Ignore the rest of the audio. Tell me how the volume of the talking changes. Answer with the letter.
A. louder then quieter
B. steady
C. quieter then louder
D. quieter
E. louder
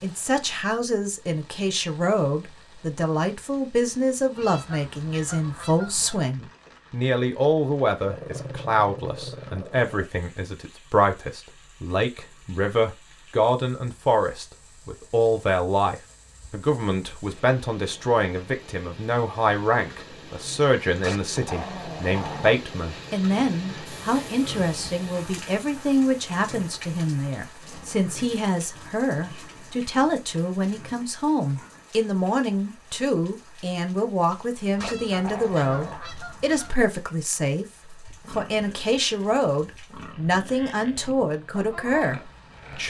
B.